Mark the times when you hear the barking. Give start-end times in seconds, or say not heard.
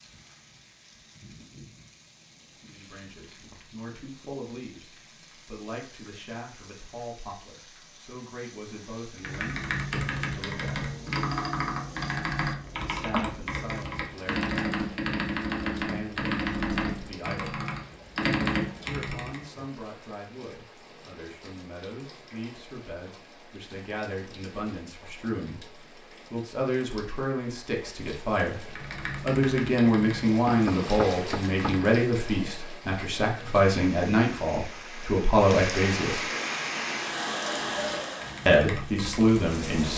not heard.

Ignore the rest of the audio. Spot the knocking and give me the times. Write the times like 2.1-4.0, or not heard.
30.4-31.8.